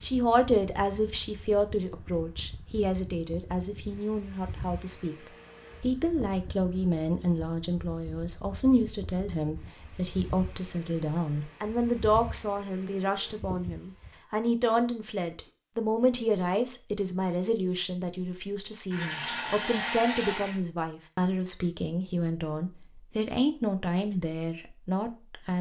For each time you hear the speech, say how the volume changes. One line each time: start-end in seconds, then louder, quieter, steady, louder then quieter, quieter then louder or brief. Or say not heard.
0.0-5.2 quieter
5.8-25.5 steady.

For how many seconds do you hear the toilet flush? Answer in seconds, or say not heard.
2 s.